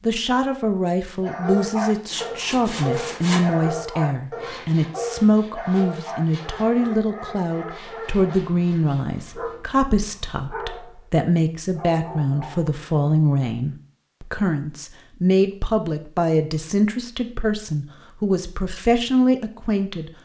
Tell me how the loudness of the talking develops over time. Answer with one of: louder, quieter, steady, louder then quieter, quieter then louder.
steady.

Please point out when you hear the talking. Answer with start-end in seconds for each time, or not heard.
0.0-20.1.